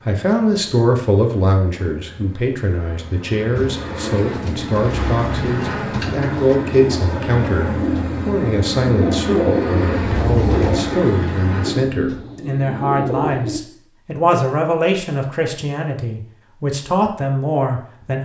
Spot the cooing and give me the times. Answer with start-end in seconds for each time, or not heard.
3.5-13.6.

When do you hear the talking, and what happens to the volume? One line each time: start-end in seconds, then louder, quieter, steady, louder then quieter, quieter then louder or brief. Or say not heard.
0.1-18.2 steady.